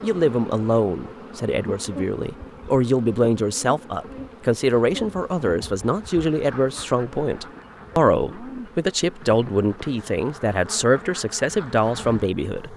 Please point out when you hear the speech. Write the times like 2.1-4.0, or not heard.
0.0-12.7.